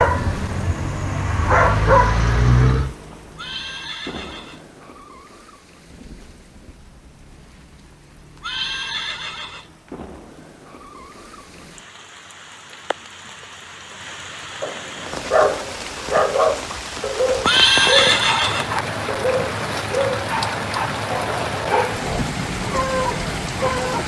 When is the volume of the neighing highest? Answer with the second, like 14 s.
18 s.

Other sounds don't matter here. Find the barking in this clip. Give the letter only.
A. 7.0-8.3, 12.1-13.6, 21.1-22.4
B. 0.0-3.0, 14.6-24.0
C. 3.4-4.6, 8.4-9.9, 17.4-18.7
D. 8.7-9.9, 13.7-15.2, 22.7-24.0
B.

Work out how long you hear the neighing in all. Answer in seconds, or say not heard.
4 s.